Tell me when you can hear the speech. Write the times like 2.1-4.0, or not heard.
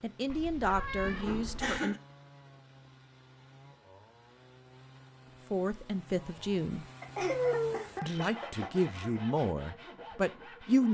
0.0-1.9, 5.5-6.8, 8.0-10.8.